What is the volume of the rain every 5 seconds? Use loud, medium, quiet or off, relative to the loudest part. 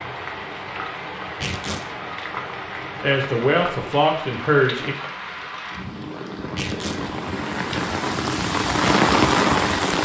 medium, loud.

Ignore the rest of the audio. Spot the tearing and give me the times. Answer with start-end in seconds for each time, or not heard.
1.2-1.9, 6.4-7.1.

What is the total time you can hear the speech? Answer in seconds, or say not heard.
2 s.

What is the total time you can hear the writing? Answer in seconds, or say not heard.
not heard.